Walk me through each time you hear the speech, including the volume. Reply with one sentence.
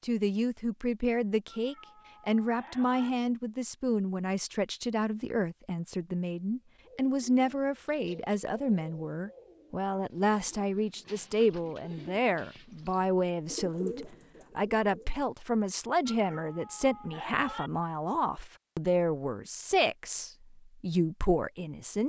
You can hear the speech from 0.0 to 22.0 s, at a steady volume.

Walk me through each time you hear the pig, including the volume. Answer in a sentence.
The pig can't be heard in this clip.